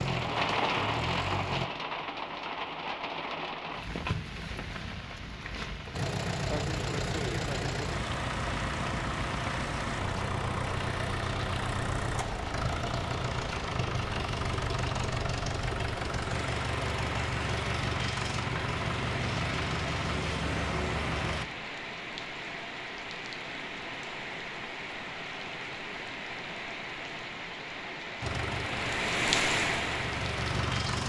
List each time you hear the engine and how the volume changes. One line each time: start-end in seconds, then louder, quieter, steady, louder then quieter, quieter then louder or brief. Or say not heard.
0.0-1.7 brief
5.9-21.4 steady
28.2-31.0 brief.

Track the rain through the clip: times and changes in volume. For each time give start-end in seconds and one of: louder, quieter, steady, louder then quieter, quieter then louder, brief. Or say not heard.
0.0-31.0 quieter then louder.